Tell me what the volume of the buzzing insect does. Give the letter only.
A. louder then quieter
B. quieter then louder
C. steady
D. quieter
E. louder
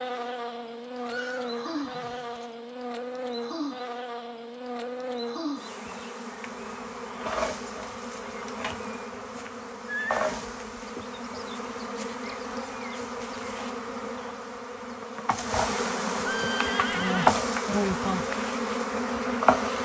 E.